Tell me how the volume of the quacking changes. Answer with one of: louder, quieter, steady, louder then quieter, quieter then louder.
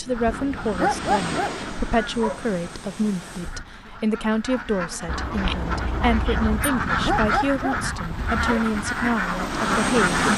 quieter then louder.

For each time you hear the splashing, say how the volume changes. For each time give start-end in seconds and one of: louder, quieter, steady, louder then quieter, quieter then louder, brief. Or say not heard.
not heard.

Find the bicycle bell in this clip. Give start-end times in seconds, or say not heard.
5.0-6.7.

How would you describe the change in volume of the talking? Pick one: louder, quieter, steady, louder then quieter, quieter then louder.
steady.